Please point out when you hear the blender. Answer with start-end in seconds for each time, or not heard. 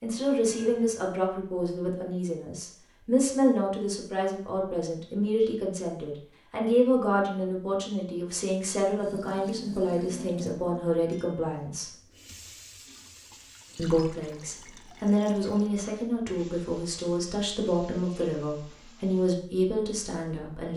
not heard.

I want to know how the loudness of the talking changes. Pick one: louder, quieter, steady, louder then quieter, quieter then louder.
steady.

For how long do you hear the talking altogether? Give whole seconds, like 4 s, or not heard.
19 s.